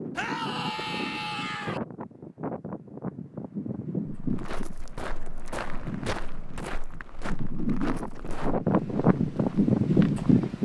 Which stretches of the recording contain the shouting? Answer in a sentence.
You can hear the shouting from 0.1 to 1.8 s.